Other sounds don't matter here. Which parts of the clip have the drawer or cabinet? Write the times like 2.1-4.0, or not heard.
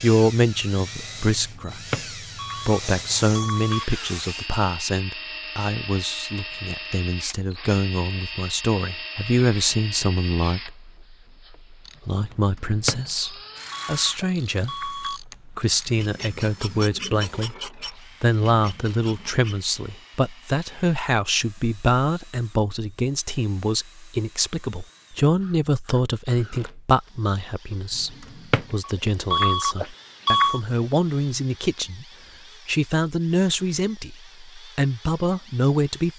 1.7-2.1, 12.7-13.1, 28.3-28.8.